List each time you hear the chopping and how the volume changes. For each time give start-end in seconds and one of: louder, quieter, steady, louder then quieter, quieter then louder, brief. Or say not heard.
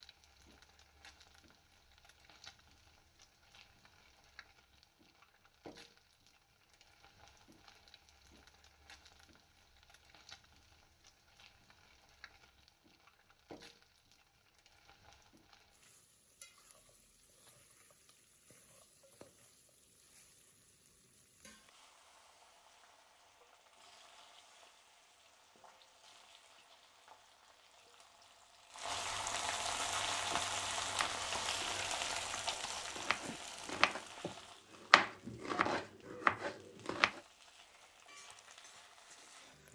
30.0-34.3 quieter then louder
34.9-37.1 brief.